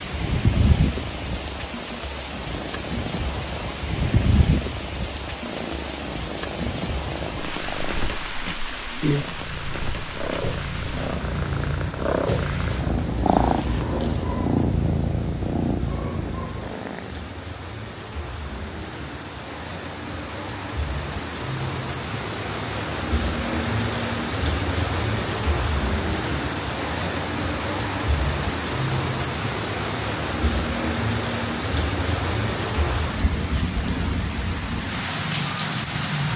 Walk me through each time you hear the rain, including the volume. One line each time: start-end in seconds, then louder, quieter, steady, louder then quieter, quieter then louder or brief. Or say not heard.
0.0-36.3 quieter then louder.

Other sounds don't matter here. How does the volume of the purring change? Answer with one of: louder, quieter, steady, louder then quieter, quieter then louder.
louder.